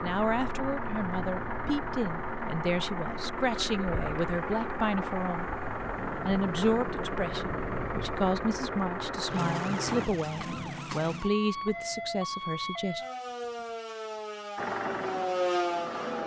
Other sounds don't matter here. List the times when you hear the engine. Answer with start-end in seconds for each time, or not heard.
0.0-10.1, 14.6-16.2.